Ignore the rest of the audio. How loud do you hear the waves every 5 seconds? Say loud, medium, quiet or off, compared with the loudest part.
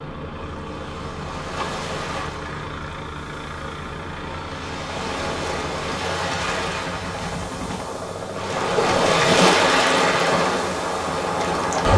quiet, loud, loud.